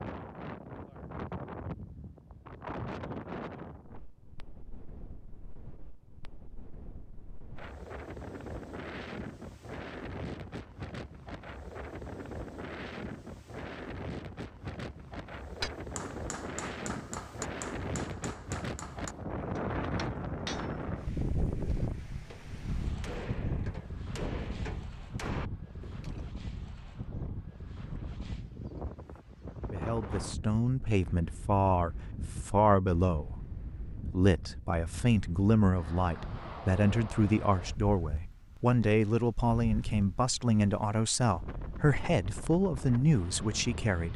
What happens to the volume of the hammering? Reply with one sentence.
The loudness of the hammering stays about the same.